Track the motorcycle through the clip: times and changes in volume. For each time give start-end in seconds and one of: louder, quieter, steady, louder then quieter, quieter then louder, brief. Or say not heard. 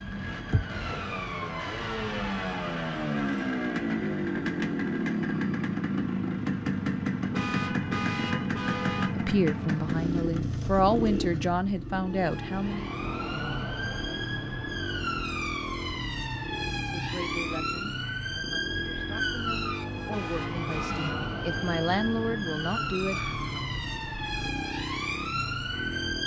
0.0-26.2 quieter.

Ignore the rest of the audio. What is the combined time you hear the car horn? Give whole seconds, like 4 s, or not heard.
3 s.